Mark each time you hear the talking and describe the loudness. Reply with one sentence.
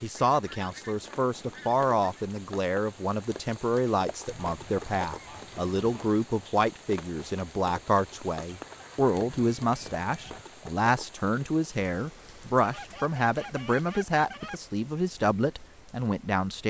You can hear the talking from 0.0 to 16.6 s, at a steady volume.